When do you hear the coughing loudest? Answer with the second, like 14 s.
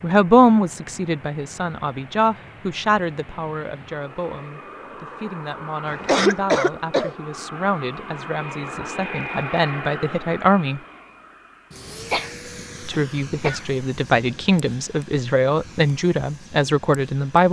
6 s.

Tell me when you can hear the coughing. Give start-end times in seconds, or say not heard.
5.8-7.1, 12.1-13.7.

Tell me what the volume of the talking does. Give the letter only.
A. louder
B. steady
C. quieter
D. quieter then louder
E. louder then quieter
D.